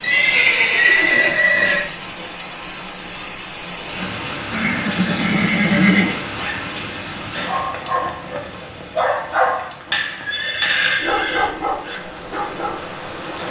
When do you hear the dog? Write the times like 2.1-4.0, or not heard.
6.3-12.8.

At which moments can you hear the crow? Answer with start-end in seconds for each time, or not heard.
not heard.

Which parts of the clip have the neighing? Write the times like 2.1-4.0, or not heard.
0.0-1.9, 4.5-6.2, 10.2-12.0.